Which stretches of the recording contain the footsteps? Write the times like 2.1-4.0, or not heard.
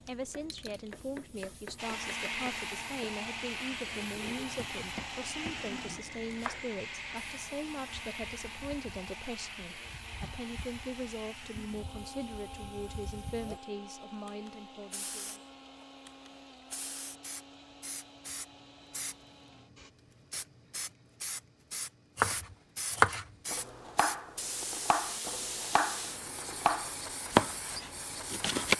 not heard.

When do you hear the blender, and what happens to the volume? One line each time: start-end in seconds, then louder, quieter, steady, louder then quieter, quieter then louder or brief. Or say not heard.
1.8-19.9 quieter.